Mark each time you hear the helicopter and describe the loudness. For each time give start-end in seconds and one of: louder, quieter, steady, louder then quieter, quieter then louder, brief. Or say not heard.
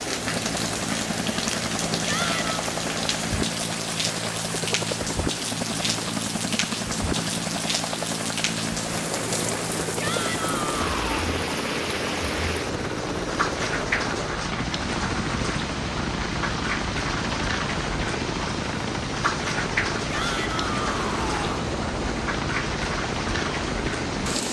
0.0-24.4 steady.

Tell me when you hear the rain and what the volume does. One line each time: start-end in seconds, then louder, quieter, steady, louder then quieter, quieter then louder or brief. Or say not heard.
0.0-24.4 steady.